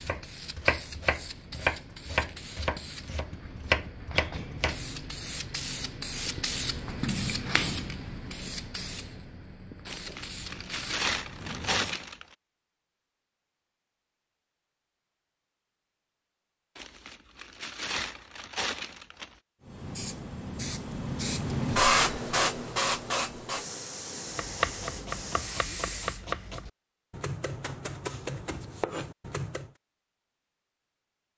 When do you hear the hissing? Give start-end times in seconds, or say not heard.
0.0-12.1, 19.6-26.2.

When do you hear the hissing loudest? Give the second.
22 s.